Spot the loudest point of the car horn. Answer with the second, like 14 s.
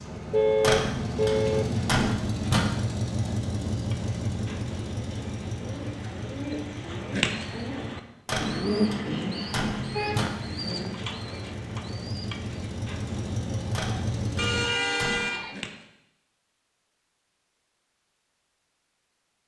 1 s.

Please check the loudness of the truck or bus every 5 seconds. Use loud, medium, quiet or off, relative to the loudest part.
loud, medium, loud, off.